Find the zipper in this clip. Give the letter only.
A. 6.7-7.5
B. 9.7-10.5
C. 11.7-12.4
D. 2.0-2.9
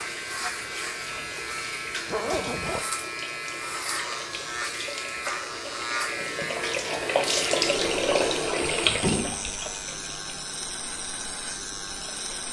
D.